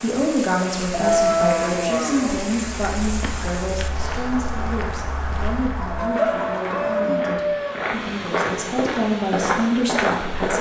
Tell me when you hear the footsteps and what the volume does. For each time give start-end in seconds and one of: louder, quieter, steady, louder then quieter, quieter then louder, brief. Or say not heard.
2.6-10.5 louder.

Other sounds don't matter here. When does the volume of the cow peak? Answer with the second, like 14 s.
1 s.